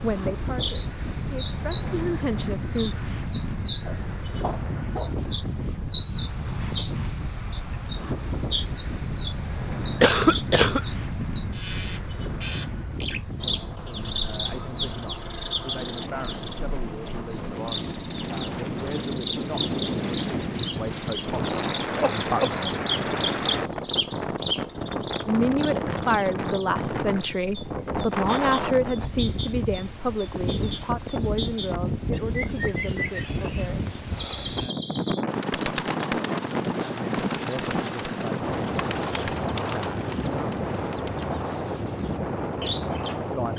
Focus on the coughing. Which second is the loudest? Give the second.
10 s.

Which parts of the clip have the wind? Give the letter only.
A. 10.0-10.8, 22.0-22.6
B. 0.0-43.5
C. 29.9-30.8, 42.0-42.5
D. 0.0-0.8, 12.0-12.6
B.